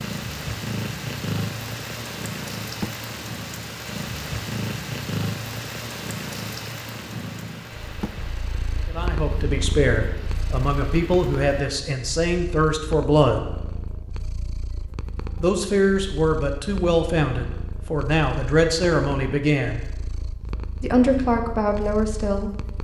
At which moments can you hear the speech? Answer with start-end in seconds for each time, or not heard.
8.8-13.4, 15.4-19.8, 20.8-22.8.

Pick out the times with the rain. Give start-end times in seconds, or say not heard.
0.0-11.6.